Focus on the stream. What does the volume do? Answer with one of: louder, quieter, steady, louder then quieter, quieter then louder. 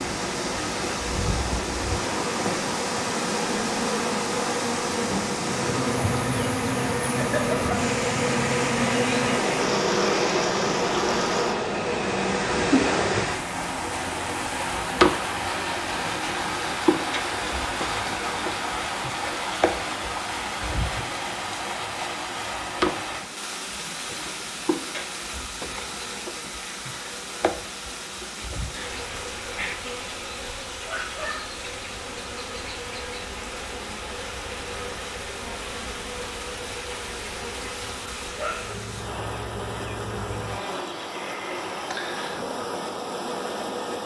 quieter.